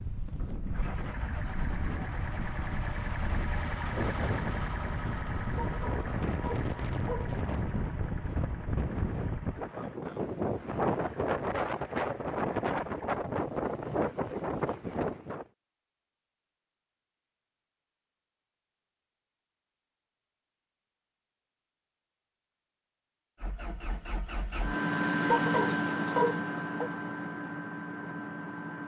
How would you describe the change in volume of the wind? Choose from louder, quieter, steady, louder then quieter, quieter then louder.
louder.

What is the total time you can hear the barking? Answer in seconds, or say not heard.
3 s.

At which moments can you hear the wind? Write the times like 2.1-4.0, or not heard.
0.0-15.4.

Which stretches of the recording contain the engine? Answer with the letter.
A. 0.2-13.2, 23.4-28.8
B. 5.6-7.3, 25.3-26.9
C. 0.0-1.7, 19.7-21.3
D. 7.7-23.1
A.